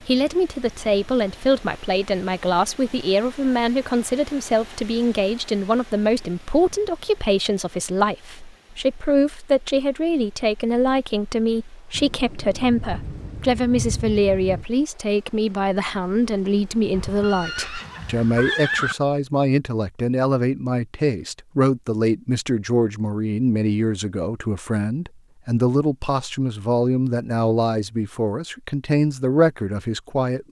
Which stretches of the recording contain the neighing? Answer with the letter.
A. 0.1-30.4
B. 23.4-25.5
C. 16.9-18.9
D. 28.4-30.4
C.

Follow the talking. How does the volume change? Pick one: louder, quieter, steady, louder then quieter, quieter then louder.
steady.